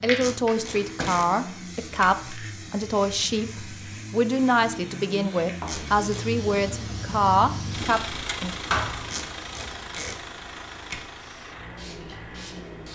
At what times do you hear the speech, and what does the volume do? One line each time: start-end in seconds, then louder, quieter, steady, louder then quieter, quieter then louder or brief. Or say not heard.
0.0-8.6 steady.